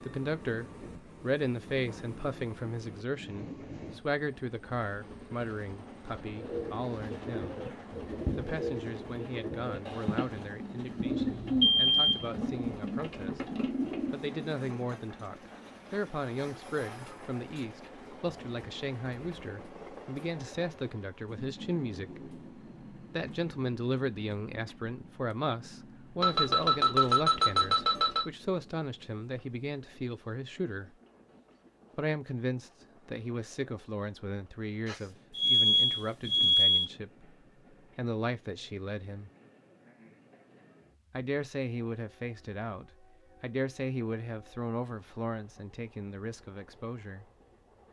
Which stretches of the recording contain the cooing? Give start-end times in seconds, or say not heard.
6.3-14.3.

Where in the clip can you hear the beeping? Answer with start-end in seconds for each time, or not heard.
11.1-12.2, 26.2-28.2, 34.9-36.9.